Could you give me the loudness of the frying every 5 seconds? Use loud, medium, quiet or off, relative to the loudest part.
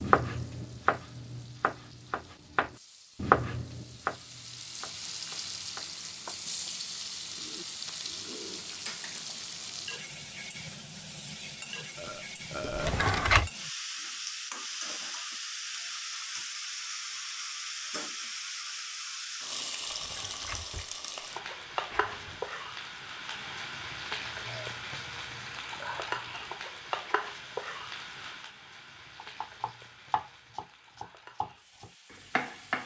quiet, loud, loud, loud, loud, loud, quiet.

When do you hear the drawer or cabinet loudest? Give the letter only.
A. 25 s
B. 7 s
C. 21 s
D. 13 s
D.